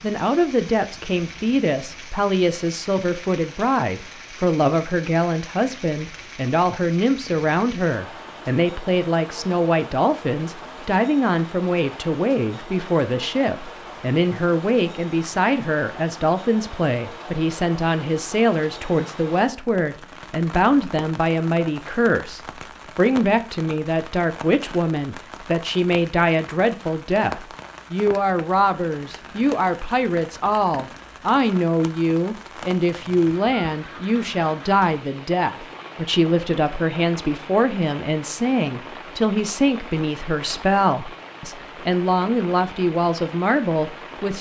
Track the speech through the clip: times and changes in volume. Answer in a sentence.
You can hear the speech from 0.0 to 44.3 s, at a steady volume.